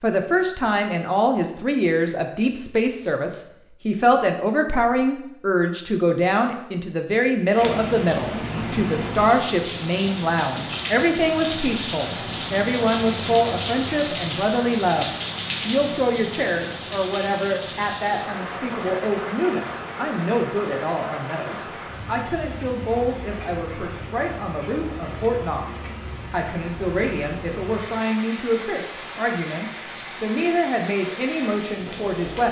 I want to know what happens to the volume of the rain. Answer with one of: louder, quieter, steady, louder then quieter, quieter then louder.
quieter.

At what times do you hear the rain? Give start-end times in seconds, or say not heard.
7.5-32.4.